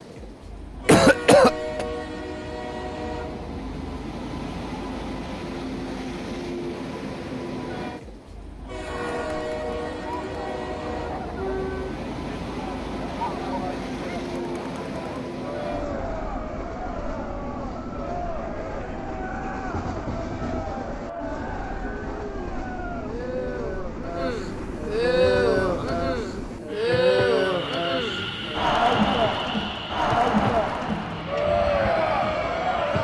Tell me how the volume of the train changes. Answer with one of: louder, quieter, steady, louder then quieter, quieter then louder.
steady.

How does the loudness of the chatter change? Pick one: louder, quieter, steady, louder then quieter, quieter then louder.
louder.